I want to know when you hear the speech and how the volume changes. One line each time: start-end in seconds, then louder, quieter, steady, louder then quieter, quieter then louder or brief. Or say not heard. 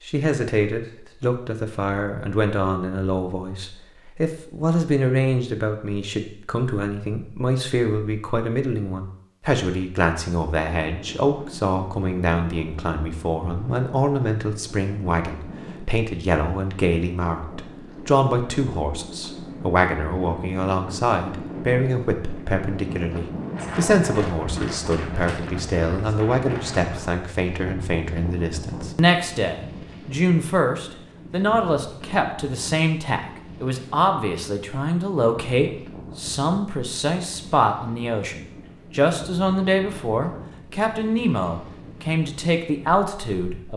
0.1-43.7 steady.